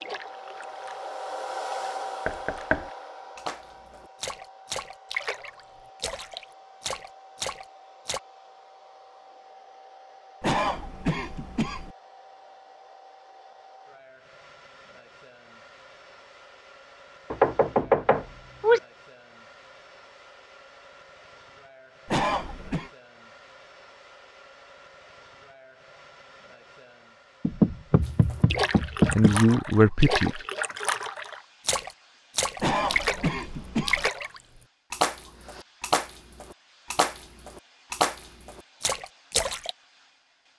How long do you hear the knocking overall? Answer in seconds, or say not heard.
4 s.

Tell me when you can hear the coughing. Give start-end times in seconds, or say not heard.
10.4-11.9, 22.1-22.9, 32.5-34.1.